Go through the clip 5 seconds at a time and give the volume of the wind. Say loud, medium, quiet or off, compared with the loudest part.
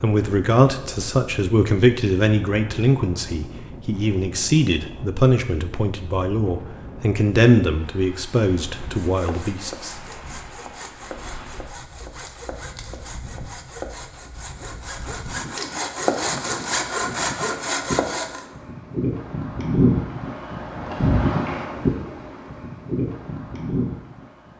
quiet, quiet, quiet, loud, loud.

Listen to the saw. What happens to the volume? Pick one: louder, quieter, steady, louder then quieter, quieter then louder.
louder.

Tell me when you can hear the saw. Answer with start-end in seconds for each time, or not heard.
8.8-18.4.